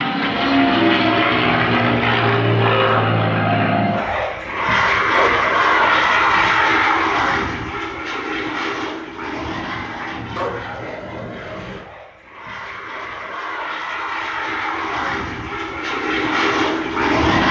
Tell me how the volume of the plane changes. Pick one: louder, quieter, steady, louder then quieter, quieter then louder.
quieter then louder.